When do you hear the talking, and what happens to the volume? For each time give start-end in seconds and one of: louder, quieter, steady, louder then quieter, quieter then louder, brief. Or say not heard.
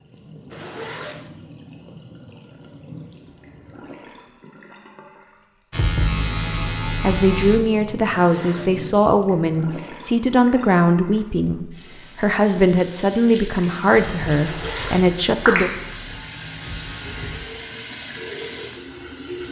7.0-15.7 steady.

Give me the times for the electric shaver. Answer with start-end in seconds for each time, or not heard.
5.7-7.6, 13.9-17.4.